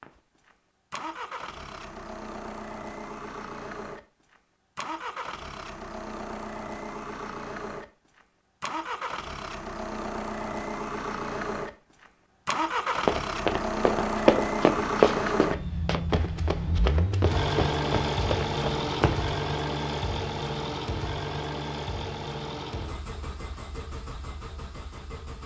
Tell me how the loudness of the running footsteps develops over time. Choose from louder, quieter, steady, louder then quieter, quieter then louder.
quieter.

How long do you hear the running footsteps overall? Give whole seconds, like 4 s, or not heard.
6 s.